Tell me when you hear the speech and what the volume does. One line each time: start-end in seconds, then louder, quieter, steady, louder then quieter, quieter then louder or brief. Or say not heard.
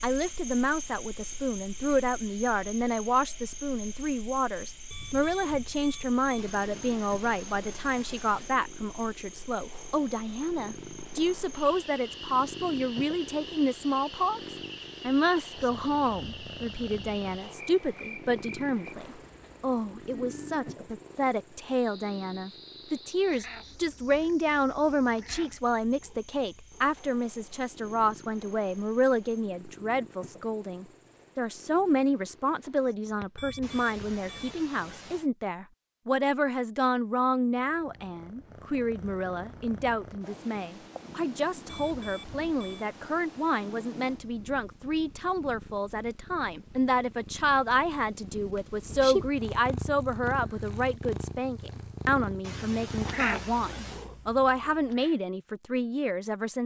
0.0-56.6 steady.